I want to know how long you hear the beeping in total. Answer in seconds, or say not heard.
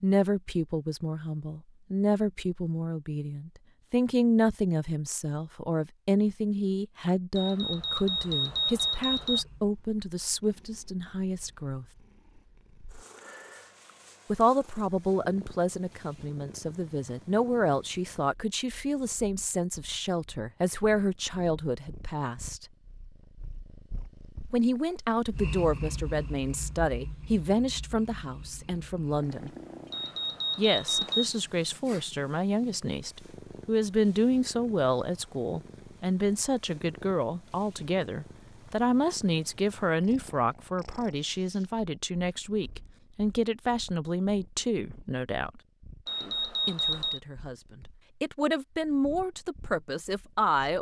5 s.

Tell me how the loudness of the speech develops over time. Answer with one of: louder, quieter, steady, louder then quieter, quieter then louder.
steady.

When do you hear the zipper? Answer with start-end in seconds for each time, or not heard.
not heard.